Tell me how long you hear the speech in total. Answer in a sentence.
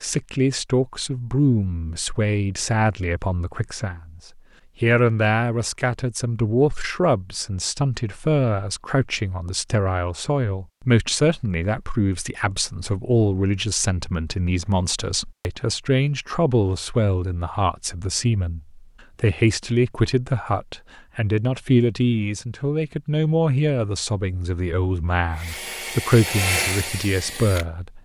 You can hear the speech for 27 seconds altogether.